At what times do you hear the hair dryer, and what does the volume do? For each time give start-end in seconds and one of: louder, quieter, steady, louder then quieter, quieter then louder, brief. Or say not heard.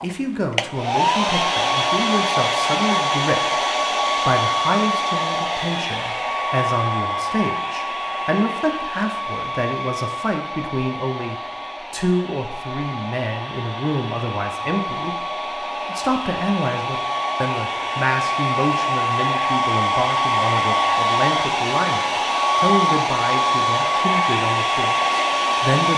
0.0-25.9 quieter then louder.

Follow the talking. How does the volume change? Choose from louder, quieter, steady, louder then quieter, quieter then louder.
steady.